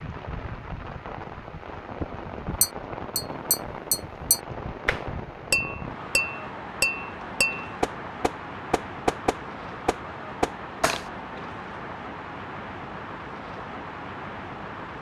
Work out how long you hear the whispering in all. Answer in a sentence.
You can't hear the whispering here.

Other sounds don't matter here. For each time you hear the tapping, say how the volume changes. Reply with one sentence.
You can hear the tapping from 2.6 to 11.1 s, at a steady volume.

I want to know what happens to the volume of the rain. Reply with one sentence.
The loudness of the rain stays about the same.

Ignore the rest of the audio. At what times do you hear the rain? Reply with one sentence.
The rain can be heard from 0.0 to 14.9 s.